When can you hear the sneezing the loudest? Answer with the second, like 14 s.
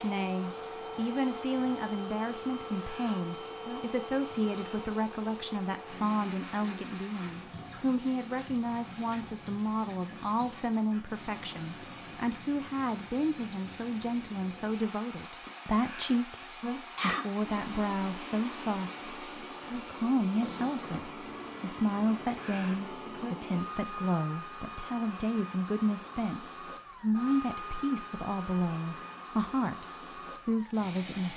17 s.